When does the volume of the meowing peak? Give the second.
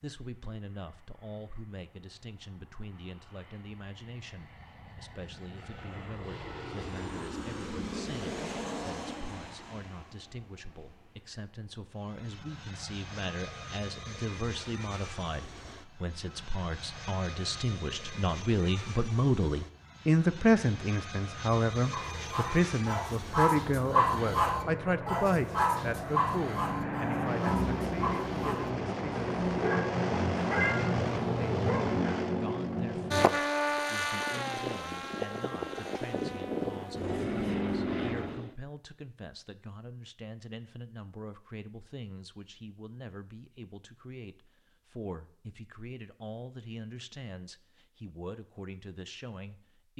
31 s.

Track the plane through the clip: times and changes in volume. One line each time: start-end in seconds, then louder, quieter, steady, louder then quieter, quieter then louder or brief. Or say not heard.
0.0-38.5 louder.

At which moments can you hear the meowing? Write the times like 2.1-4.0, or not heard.
30.6-32.0.